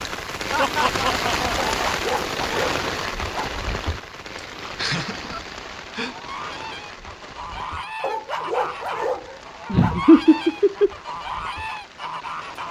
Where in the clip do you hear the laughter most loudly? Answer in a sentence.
The volume of the laughter peaks at 10 seconds.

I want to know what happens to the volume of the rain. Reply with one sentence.
The loudness of the rain goes down.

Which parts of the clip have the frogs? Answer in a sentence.
You can't hear the frogs here.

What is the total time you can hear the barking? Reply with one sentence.
The barking can be heard for 4 seconds in total.